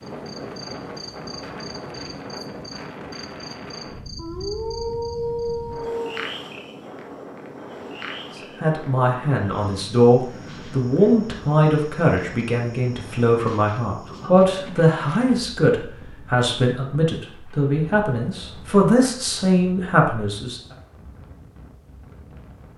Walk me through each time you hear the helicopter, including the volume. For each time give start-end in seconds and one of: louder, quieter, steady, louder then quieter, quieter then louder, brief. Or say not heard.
not heard.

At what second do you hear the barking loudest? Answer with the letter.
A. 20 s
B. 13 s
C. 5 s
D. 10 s
C.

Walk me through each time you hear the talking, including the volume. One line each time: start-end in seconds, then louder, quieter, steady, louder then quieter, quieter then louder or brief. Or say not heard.
8.6-20.6 steady.